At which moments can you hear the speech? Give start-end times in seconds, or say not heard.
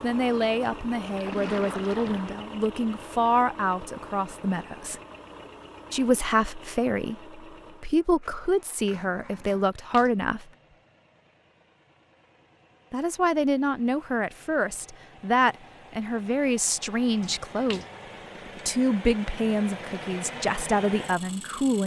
0.0-5.0, 5.9-10.4, 12.9-17.8, 18.6-21.8.